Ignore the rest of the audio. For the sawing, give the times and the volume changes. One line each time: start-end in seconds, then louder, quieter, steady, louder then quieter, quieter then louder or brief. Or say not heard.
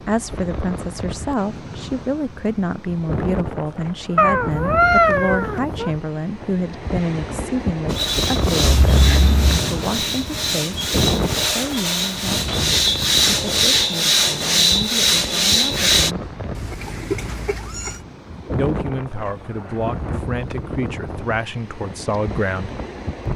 7.8-16.1 louder.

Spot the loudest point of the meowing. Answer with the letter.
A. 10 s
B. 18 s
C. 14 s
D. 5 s
D.